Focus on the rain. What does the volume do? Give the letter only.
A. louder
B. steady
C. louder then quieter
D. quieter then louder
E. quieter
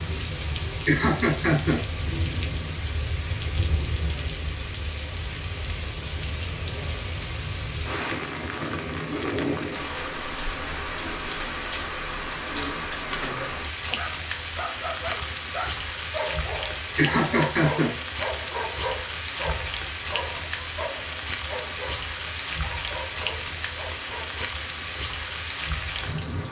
B.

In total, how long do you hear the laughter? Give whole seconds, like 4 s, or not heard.
2 s.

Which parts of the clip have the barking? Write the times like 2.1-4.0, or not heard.
13.0-24.5.